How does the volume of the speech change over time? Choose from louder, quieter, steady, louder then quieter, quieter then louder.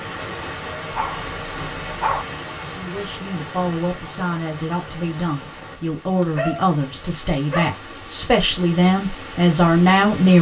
louder.